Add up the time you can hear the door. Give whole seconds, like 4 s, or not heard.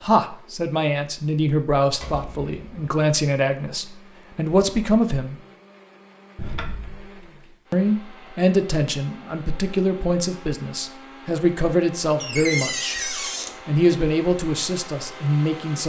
3 s.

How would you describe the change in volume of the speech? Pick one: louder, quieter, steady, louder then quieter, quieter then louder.
steady.